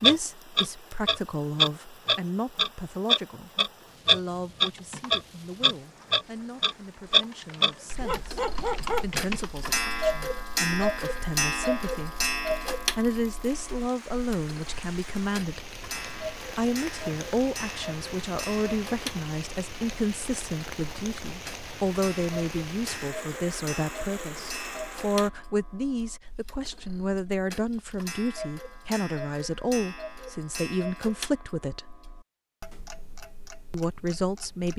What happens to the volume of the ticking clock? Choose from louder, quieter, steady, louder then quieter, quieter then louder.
quieter.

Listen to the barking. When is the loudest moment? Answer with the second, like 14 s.
9 s.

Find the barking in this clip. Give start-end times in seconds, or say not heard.
7.5-9.1.